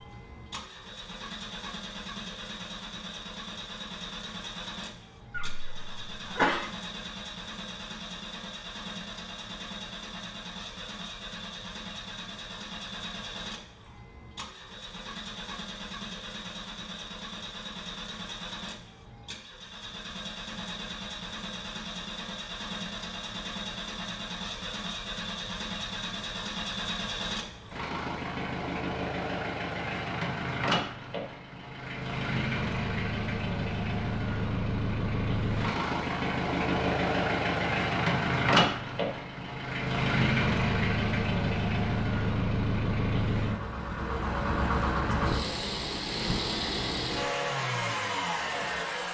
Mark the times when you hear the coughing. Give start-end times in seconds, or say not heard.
5.3-6.7.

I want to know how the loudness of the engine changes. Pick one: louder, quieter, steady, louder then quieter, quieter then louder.
louder.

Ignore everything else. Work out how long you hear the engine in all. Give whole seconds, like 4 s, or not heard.
49 s.